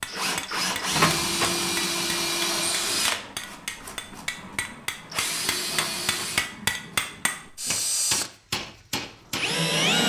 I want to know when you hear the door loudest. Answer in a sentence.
The volume of the door peaks at 1 second.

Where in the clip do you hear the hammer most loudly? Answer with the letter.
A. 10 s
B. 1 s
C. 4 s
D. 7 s
D.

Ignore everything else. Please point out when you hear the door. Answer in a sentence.
You can hear the door from 0.9 to 1.6 s and from 5.7 to 6.3 s.